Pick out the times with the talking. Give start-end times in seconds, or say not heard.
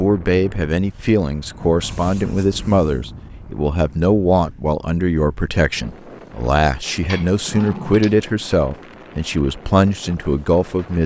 0.0-11.0.